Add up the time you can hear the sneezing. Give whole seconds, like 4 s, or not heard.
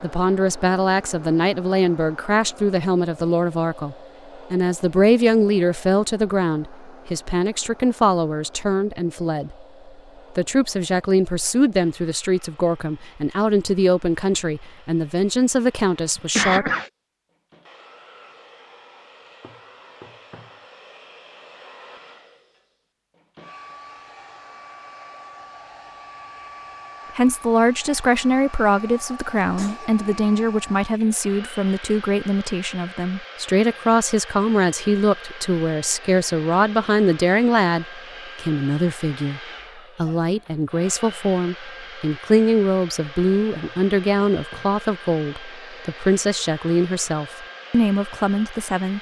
2 s.